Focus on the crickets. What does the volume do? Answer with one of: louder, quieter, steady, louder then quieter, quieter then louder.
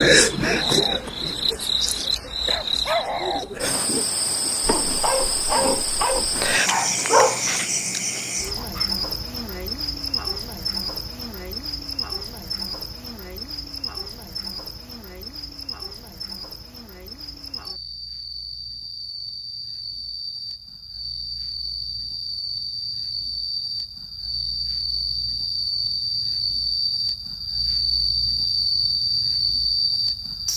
quieter then louder.